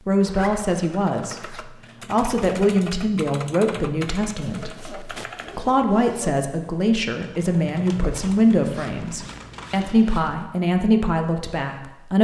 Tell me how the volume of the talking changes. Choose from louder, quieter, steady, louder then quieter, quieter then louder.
steady.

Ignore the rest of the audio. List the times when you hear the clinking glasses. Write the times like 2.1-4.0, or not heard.
not heard.